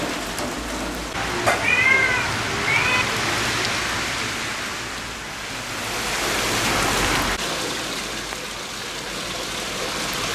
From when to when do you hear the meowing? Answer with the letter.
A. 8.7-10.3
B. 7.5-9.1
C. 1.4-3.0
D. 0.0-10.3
C.